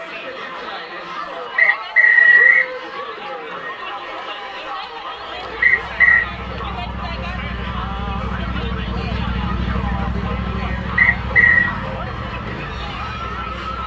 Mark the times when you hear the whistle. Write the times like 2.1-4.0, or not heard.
1.6-2.7, 5.6-6.2, 10.9-11.7.